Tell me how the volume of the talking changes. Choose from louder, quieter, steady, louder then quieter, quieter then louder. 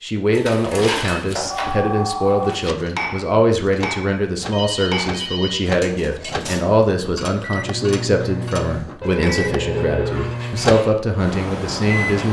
steady.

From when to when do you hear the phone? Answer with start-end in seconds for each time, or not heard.
1.5-2.5, 4.5-5.6, 9.0-10.3.